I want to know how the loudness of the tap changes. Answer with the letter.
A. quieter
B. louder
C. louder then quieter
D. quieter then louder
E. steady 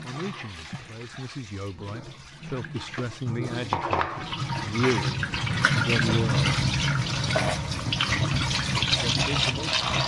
B.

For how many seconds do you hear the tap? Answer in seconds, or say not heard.
10 s.